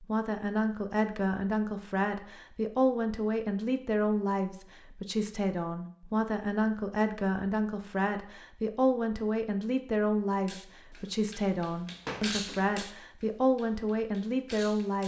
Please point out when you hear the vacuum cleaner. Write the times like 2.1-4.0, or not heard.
not heard.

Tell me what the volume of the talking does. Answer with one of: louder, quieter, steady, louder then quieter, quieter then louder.
steady.